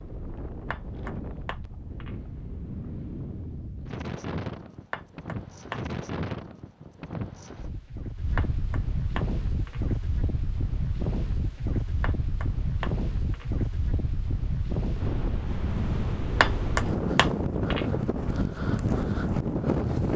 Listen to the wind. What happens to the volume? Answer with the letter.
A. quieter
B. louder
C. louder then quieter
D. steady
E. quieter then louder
B.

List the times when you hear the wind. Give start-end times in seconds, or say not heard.
0.0-20.1.